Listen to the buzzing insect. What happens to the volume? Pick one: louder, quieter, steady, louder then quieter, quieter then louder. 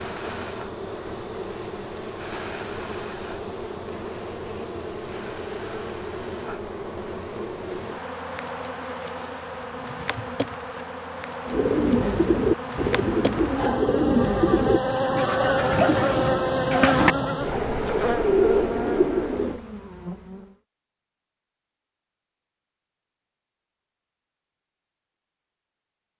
louder.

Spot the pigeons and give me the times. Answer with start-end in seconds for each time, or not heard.
11.4-19.6.